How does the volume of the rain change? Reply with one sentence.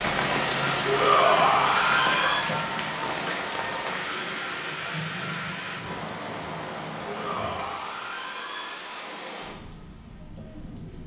The loudness of the rain goes down.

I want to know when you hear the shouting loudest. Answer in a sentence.
The volume of the shouting peaks at 1 second.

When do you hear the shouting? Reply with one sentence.
The shouting can be heard from 0.8 to 2.5 s and from 7.0 to 9.0 s.